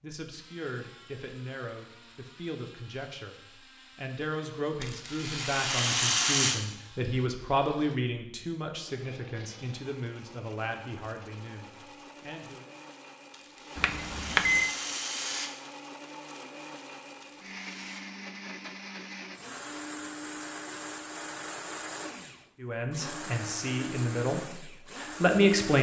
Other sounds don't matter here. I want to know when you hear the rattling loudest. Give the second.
6 s.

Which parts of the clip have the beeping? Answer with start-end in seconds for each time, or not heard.
13.8-14.7.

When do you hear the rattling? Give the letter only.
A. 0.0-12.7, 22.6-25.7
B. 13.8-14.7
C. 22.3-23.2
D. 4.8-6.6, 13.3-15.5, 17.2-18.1
D.